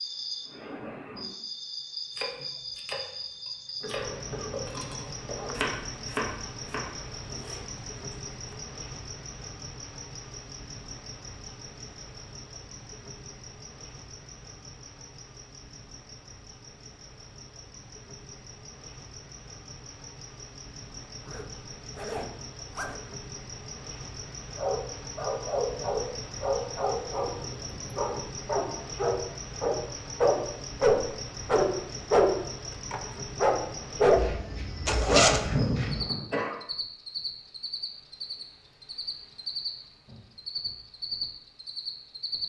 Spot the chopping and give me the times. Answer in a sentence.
The chopping can be heard from 2.1 to 8.6 s.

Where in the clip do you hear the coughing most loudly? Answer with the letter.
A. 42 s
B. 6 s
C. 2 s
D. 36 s
D.